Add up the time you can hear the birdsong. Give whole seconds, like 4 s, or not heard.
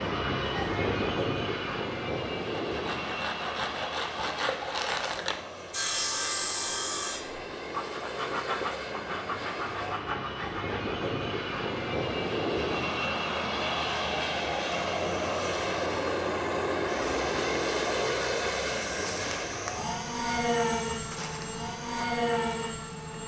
not heard.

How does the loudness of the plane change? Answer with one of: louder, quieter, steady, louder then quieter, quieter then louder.
quieter then louder.